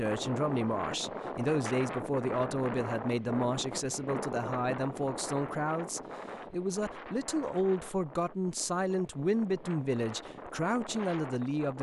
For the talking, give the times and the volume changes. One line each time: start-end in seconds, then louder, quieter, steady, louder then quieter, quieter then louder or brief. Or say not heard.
0.0-11.7 steady.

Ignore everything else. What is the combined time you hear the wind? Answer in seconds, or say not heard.
12 s.